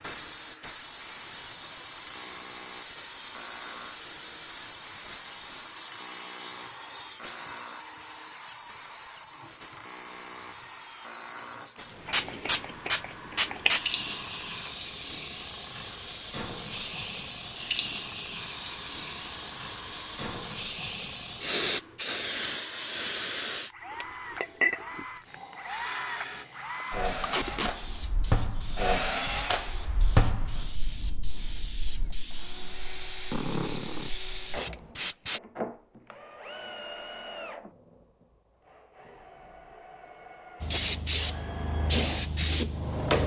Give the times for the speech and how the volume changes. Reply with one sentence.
You can't hear the speech here.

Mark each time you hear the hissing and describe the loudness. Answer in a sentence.
You can hear the hissing from 0.0 to 35.4 s, getting quieter; and briefly from 40.6 to 43.2 s.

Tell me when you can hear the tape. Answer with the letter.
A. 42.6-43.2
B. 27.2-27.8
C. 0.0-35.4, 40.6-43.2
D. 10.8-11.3
B.